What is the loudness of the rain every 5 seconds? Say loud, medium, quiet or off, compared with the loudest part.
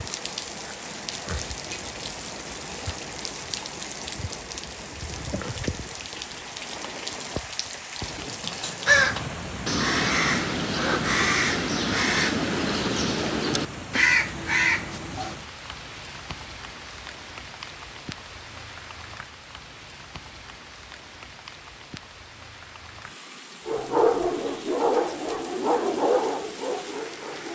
loud, loud, loud, medium, medium, medium.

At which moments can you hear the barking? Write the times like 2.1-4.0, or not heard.
23.6-27.4.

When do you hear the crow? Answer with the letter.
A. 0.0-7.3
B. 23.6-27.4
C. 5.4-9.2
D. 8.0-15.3
D.